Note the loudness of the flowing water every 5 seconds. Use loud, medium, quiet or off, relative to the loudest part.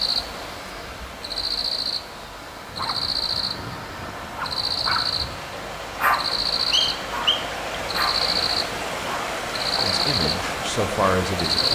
medium, loud, loud.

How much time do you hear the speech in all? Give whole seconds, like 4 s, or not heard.
2 s.